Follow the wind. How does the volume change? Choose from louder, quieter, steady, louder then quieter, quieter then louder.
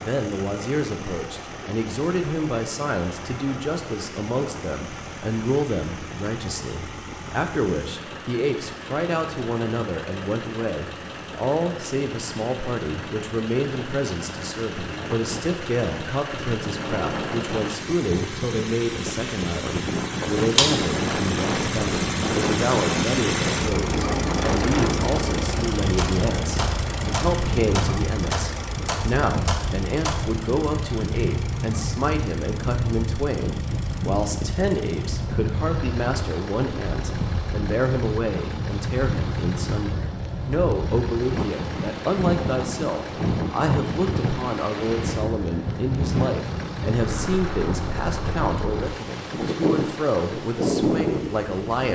louder.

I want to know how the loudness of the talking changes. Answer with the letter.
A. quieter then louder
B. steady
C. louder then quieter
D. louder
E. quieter
B.